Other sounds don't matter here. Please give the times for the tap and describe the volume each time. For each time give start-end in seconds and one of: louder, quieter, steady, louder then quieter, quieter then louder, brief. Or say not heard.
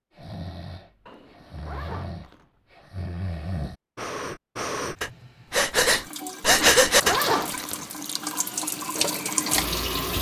5.0-10.1 louder.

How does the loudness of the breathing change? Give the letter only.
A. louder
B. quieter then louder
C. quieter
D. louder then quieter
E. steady
A.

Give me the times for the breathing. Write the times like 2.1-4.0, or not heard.
0.1-7.7.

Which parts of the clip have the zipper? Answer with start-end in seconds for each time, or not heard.
1.1-2.5, 6.4-7.8.